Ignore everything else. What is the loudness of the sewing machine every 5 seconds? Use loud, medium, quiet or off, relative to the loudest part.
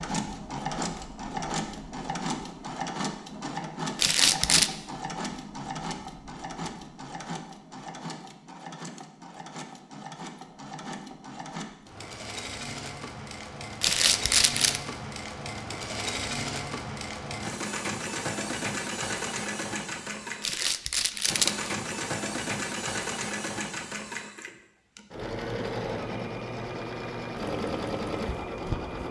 loud, medium, medium, loud, loud, loud.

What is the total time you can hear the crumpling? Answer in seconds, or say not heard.
3 s.